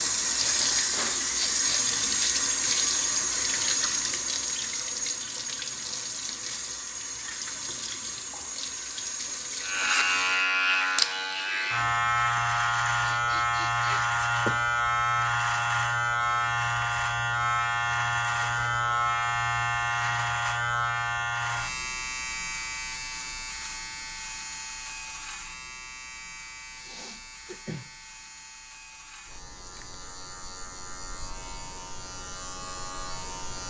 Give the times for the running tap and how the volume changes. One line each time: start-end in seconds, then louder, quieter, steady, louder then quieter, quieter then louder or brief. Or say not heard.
0.0-10.5 quieter.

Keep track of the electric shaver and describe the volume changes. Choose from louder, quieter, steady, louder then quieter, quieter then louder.
quieter.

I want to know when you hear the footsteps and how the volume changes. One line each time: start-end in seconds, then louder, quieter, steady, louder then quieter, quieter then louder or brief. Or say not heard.
not heard.